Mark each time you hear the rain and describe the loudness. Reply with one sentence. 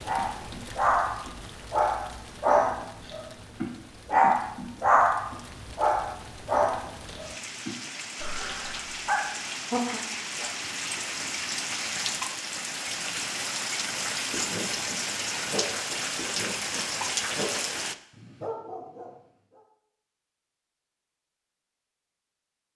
The rain can be heard from 0.0 to 17.9 s, getting louder.